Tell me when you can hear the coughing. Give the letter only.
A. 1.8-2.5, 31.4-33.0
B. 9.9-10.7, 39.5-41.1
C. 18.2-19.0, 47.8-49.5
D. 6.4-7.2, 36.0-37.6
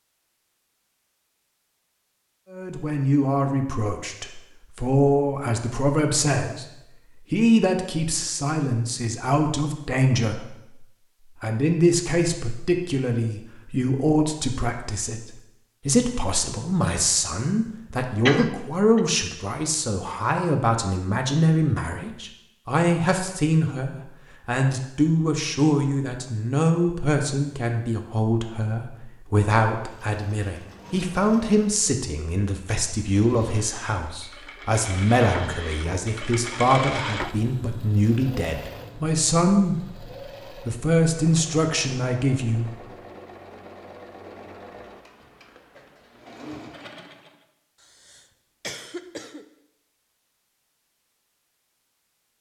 C.